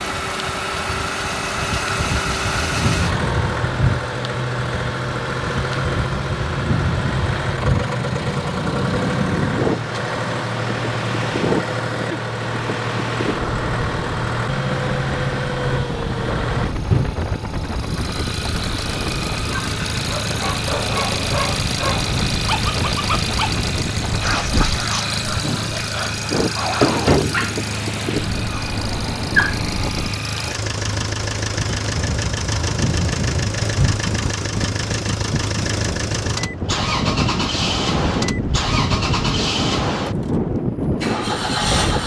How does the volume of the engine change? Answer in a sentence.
The volume of the engine stays about the same.